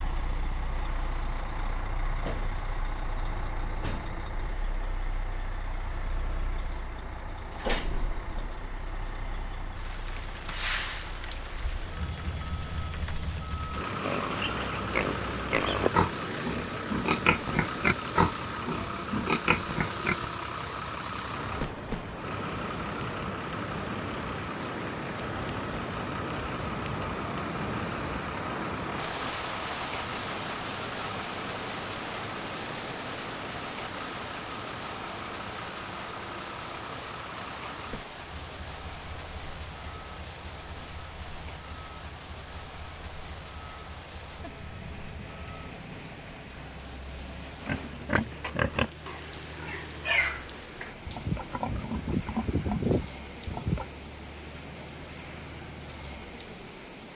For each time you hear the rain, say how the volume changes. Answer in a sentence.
You can hear the rain from 9.7 to 57.1 s, getting louder then quieter.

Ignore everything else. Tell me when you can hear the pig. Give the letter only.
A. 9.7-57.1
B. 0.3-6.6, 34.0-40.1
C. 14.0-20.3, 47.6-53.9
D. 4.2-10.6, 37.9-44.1
C.